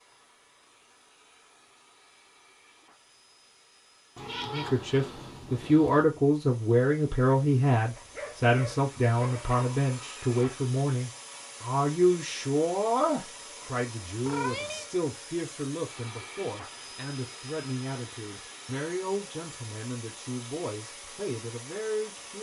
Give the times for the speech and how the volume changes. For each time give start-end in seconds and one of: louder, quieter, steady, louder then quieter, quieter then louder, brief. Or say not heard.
4.5-22.3 quieter.